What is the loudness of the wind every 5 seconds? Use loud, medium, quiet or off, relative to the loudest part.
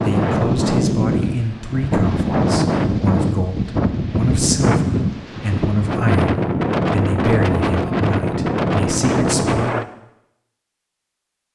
loud, loud, off.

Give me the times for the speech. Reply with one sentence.
You can hear the speech from 0.0 to 9.9 s.